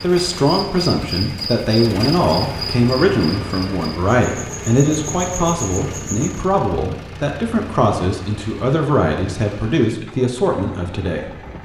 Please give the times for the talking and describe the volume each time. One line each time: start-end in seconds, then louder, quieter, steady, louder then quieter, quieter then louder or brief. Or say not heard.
0.0-11.3 steady.